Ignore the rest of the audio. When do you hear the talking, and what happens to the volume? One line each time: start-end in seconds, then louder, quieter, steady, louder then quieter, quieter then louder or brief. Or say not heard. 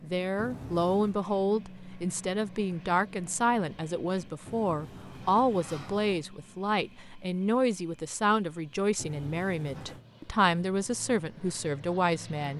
0.0-12.5 steady.